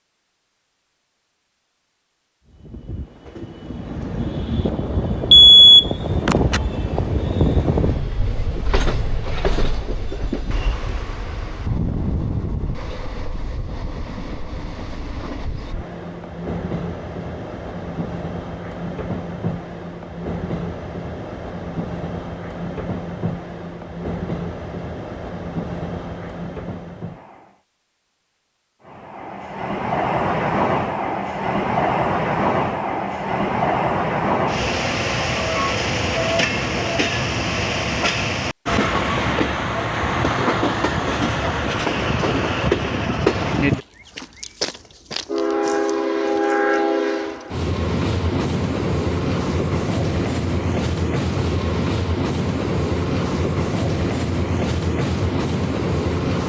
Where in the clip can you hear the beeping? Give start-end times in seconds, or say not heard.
5.3-6.6.